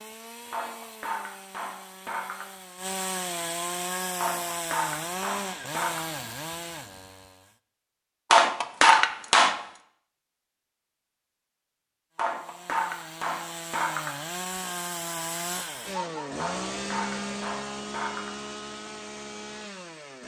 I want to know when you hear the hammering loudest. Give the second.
9 s.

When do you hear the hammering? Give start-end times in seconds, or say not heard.
0.5-2.5, 4.2-6.0, 8.3-9.6, 12.2-14.2, 16.4-18.4.